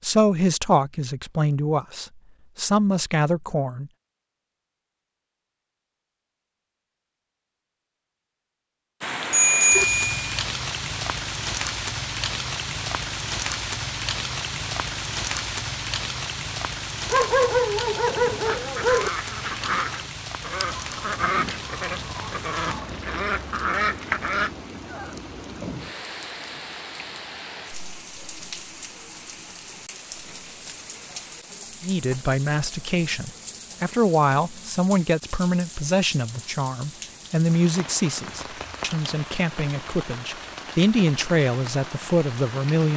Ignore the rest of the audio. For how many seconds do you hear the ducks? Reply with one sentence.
The ducks can be heard for 6 seconds in total.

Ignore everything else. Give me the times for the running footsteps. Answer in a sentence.
You can't hear the running footsteps here.